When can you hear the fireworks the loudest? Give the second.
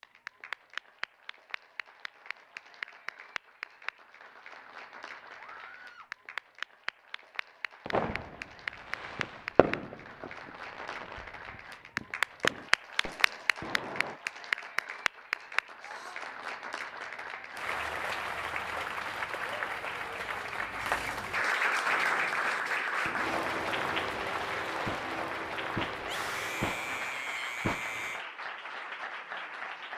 8 s.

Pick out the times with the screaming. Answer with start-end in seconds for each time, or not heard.
5.4-6.1, 15.8-16.3, 26.0-28.2.